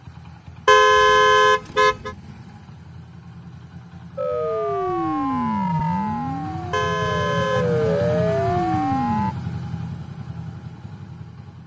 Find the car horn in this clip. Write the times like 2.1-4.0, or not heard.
0.7-2.1, 6.7-7.7.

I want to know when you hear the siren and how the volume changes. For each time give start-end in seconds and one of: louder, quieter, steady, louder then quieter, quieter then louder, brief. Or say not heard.
4.2-9.3 quieter then louder.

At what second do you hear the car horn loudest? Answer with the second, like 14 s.
1 s.